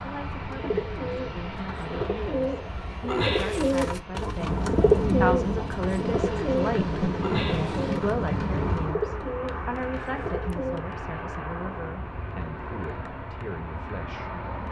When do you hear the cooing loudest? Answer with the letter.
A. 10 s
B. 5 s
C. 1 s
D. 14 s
B.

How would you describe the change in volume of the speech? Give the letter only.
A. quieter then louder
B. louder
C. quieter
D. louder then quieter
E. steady
D.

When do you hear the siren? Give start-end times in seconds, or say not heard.
not heard.